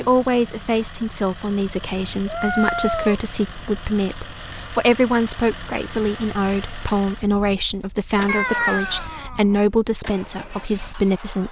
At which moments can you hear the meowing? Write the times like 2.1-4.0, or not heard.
1.6-3.6, 8.2-9.6.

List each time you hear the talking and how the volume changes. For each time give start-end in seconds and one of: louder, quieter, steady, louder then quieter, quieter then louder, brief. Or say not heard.
0.0-11.4 steady.